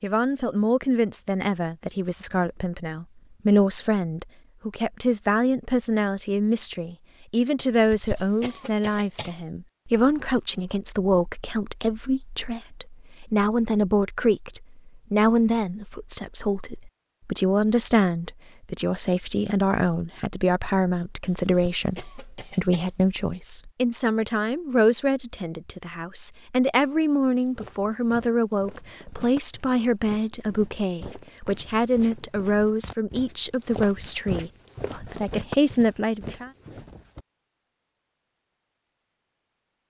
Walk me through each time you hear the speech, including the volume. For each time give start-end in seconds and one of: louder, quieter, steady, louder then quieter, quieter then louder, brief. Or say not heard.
0.0-36.5 steady.